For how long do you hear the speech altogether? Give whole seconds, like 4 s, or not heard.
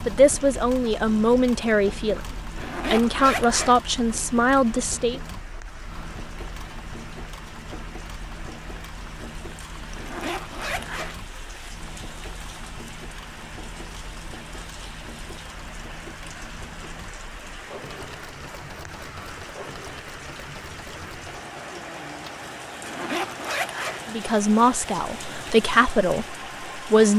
8 s.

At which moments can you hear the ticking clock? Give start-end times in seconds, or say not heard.
not heard.